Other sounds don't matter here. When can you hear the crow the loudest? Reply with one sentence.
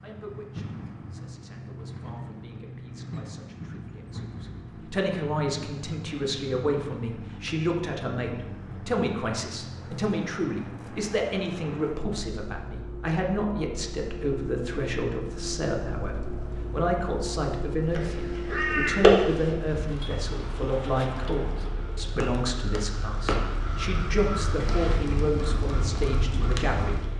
The volume of the crow peaks at 19 seconds.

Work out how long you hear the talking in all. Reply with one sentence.
The talking can be heard for 27 seconds in total.